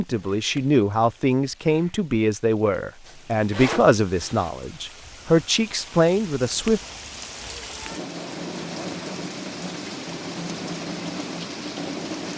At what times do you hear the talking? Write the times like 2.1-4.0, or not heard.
0.0-6.8.